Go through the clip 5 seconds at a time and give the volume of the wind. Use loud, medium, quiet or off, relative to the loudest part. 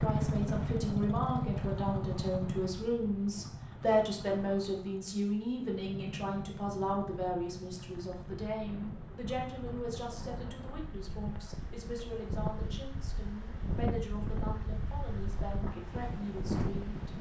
medium, medium, loud, loud.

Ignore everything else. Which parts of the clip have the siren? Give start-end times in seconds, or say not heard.
not heard.